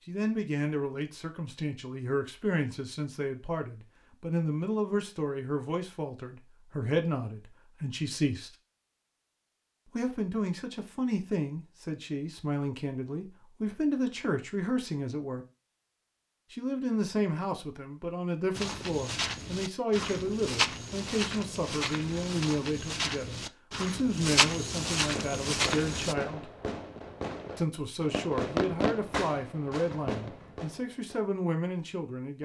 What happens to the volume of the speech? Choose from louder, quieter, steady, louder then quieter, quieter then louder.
steady.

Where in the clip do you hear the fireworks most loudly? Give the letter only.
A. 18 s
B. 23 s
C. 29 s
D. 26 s
C.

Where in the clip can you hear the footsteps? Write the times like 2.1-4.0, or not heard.
18.6-26.1.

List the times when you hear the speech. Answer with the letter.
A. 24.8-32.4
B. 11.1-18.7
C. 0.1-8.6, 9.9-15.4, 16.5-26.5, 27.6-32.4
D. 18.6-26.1
C.